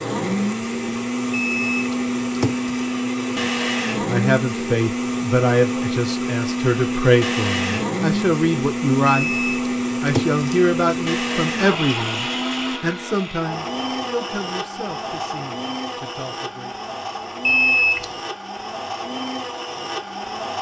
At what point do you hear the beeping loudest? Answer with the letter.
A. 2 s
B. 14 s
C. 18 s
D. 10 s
C.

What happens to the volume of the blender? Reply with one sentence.
The volume of the blender goes down.